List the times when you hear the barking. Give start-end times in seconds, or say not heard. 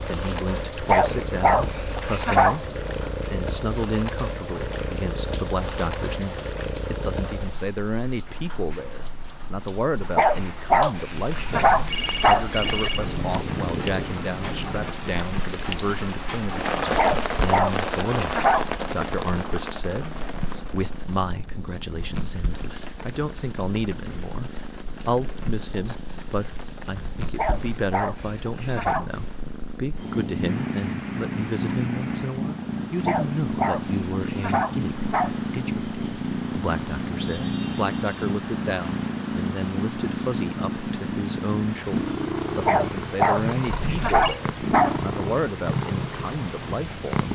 0.8-2.6, 10.2-12.9, 16.9-18.6, 27.4-29.1, 33.0-35.4, 42.6-45.0.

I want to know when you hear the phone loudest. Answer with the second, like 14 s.
13 s.